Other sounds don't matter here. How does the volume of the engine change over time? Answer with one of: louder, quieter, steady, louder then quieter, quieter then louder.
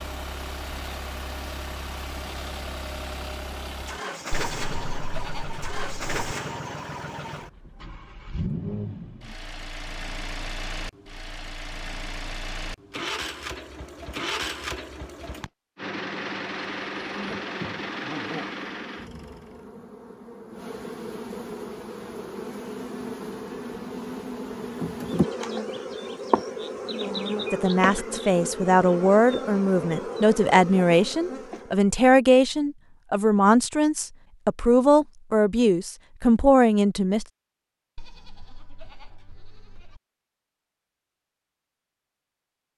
steady.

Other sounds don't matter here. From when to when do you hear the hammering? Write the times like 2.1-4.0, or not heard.
not heard.